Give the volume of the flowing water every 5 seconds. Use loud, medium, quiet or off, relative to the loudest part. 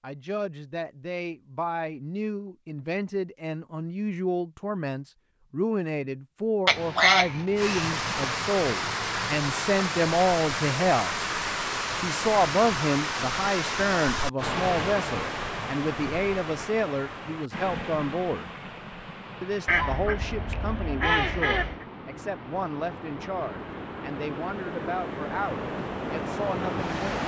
off, loud, loud, medium, medium, loud.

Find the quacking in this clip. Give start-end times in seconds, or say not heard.
6.7-8.3, 19.6-21.9.